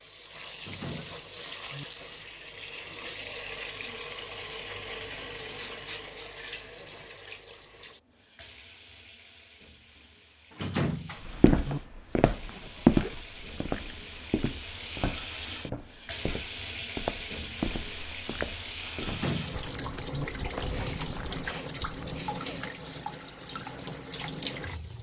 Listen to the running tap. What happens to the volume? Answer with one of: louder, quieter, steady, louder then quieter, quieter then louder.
quieter then louder.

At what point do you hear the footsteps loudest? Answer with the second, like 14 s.
13 s.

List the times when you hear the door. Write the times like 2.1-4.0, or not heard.
0.6-1.9, 10.5-11.8, 19.0-20.2.